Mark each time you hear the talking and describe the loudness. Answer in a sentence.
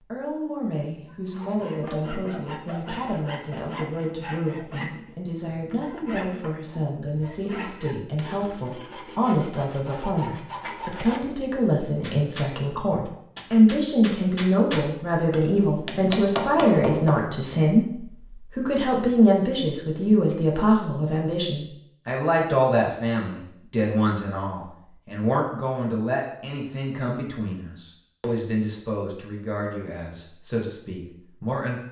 You can hear the talking from 0.1 to 31.8 s, getting louder then quieter.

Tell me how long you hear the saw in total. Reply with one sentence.
The saw can be heard for 10 seconds in total.